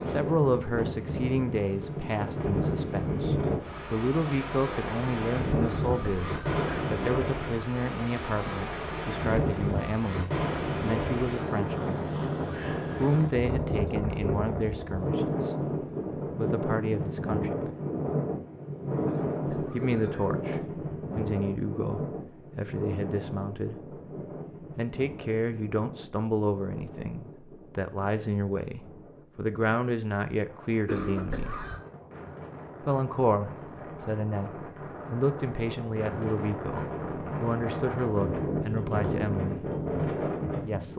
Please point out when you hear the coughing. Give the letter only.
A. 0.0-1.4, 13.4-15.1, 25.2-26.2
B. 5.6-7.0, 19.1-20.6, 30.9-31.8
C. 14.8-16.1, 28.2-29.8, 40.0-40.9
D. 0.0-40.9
B.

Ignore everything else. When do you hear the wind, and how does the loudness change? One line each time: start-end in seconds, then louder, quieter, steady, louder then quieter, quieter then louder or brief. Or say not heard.
0.0-40.9 quieter then louder.